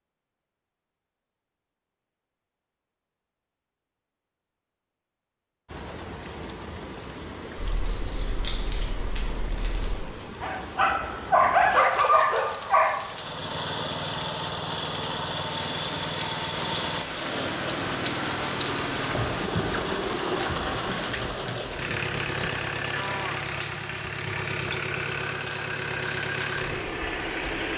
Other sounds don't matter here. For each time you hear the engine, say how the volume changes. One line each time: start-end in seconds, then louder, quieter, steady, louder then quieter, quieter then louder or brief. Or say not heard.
13.0-27.7 steady.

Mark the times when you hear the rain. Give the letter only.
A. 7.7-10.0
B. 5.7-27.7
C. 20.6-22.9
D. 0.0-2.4
B.